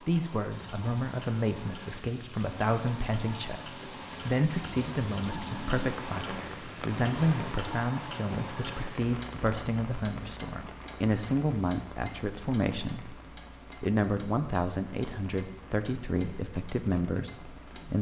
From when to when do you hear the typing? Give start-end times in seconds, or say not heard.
not heard.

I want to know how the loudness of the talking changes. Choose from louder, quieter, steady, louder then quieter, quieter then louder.
steady.